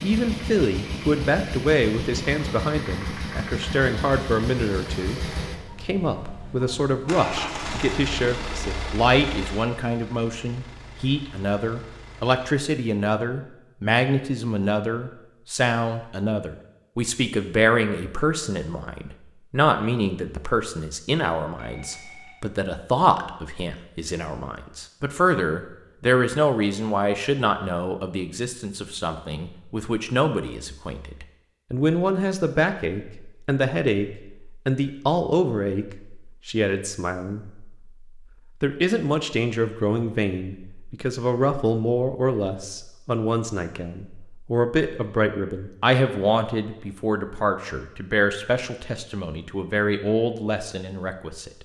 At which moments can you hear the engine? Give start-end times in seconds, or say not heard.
0.0-12.6.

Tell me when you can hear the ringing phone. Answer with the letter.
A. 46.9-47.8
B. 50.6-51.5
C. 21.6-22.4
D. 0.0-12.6
C.